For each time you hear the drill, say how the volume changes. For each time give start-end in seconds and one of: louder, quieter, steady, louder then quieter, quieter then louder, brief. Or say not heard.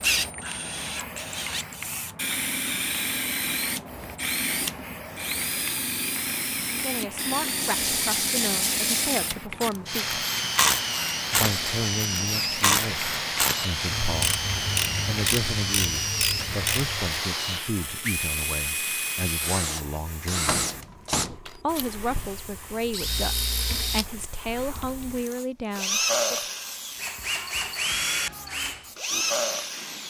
0.0-30.0 steady.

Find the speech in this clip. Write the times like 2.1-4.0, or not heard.
6.7-10.0, 11.3-20.6, 21.4-26.4.